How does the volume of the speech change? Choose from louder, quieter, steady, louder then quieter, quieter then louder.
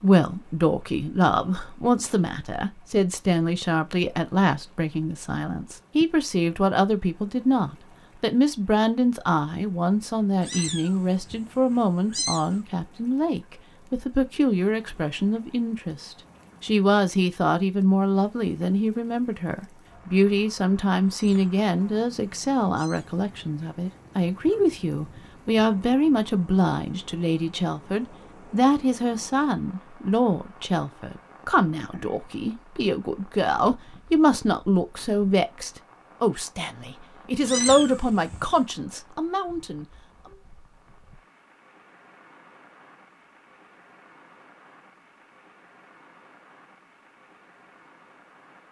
steady.